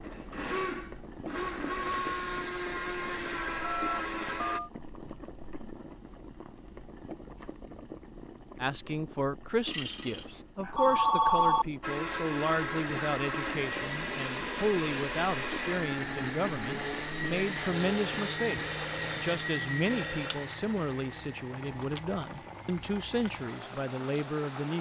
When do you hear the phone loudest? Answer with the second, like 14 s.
11 s.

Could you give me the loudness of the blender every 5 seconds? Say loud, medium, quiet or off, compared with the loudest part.
loud, off, loud, loud, medium.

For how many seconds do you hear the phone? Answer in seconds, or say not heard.
6 s.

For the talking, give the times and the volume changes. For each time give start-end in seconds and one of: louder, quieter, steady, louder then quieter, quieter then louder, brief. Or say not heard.
8.6-24.7 steady.